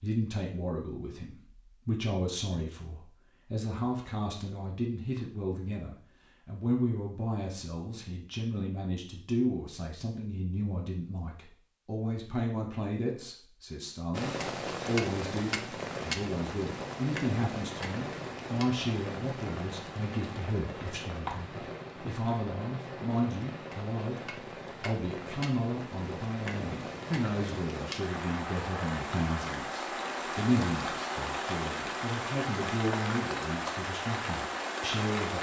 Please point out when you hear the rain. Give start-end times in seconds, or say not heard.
14.1-35.3.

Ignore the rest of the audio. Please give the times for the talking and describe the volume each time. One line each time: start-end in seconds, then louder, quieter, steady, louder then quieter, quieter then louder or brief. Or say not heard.
0.0-35.3 steady.